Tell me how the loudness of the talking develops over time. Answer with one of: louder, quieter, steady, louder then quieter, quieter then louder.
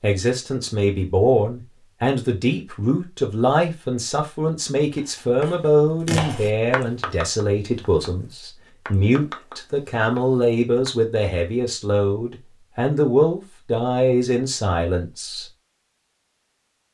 steady.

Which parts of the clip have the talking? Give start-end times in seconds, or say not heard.
0.0-15.4.